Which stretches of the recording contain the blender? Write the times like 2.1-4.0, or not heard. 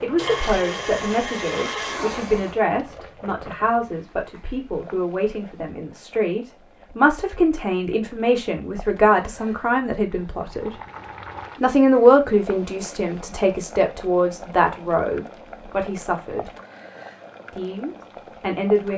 0.1-2.6.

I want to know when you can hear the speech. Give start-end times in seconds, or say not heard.
0.0-10.7, 11.6-16.5, 17.5-18.9.